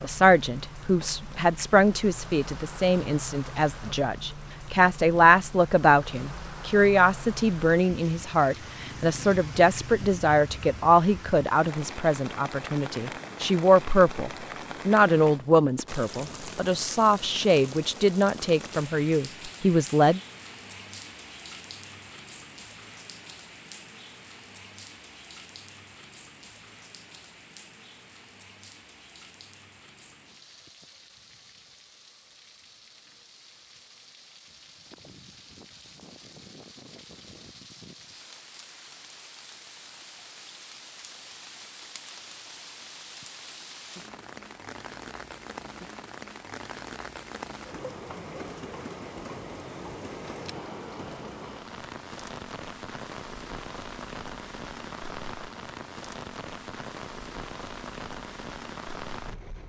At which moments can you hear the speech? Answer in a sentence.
The speech can be heard from 0.0 to 20.2 s.